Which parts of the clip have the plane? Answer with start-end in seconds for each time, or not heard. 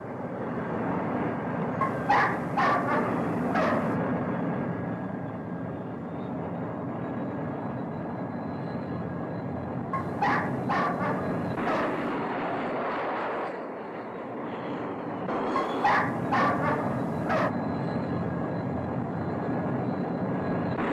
0.0-20.8.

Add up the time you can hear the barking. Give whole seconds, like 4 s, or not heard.
6 s.